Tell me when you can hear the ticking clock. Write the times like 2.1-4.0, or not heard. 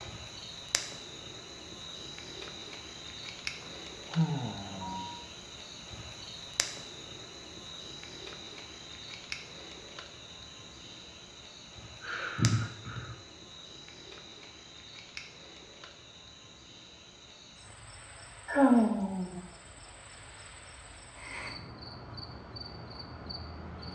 not heard.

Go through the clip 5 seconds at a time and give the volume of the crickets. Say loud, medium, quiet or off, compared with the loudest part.
loud, loud, medium, medium, loud.